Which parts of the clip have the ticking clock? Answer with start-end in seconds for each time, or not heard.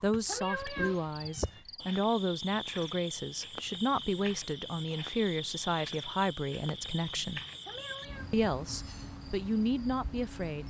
not heard.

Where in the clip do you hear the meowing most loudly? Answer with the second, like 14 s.
1 s.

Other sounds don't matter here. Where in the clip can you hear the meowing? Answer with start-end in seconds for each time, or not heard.
0.2-1.6, 7.7-8.3.